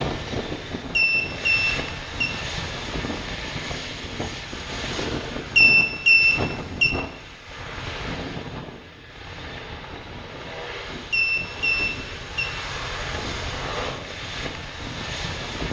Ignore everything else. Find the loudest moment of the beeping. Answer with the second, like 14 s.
6 s.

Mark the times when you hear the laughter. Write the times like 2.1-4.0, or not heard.
not heard.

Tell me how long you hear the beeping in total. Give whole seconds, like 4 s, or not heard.
4 s.